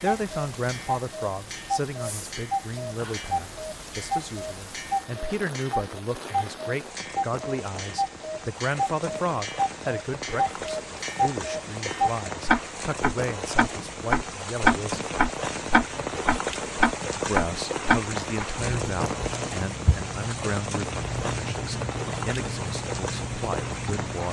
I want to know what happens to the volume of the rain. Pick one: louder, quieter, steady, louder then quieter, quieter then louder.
louder.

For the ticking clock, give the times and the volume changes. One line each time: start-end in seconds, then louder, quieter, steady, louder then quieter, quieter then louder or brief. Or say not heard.
0.0-24.2 louder then quieter.